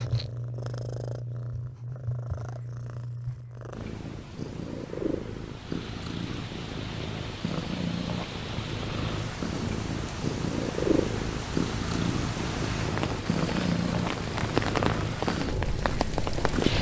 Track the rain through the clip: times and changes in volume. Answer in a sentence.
The rain can be heard from 5.4 to 16.7 s, getting louder.